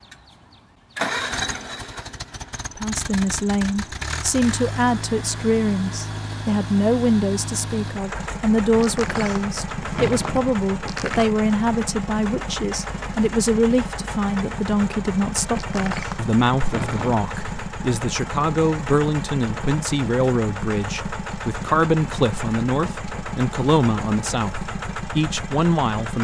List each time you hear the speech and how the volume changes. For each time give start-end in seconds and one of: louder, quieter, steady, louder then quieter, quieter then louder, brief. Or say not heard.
2.8-26.1 steady.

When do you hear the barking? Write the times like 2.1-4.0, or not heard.
not heard.